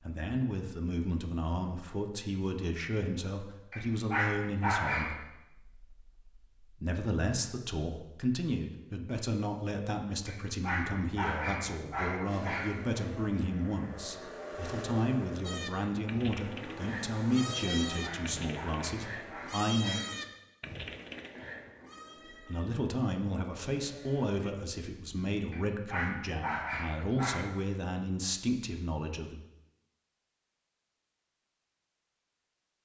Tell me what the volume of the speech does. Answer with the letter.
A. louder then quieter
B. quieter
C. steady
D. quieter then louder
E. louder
C.